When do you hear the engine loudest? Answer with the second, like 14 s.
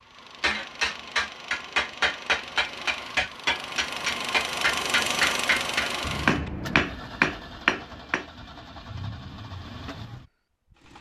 5 s.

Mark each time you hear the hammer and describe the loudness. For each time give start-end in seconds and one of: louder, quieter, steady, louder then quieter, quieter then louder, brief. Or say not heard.
0.4-8.2 steady.